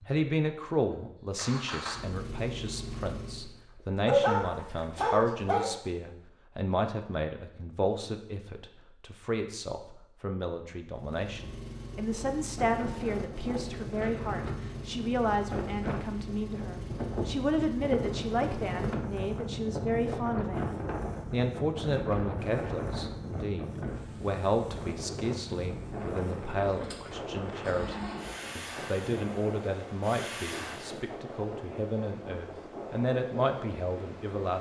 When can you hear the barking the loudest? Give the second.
4 s.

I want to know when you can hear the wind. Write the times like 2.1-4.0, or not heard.
11.9-34.5.